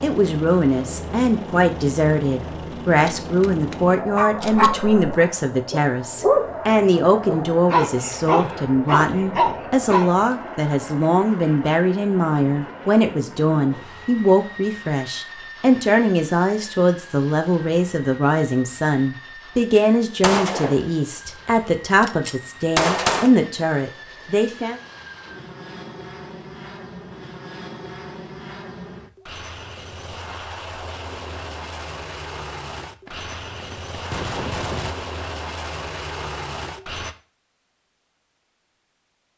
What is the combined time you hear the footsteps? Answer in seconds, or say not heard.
not heard.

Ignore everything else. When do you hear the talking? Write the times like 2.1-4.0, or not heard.
0.0-24.8.